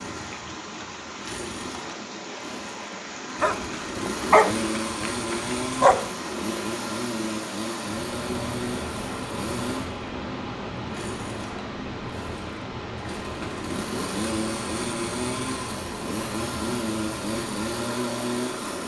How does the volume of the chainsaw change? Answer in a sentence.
The volume of the chainsaw goes up.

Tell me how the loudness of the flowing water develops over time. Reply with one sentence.
The volume of the flowing water stays about the same.